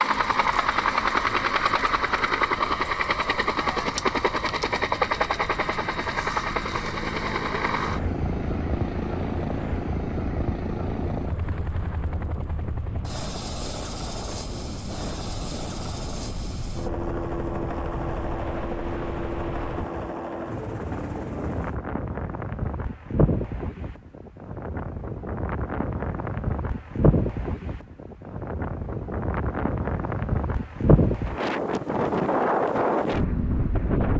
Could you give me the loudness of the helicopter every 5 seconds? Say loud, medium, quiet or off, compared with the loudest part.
loud, loud, medium, medium, medium, off, off.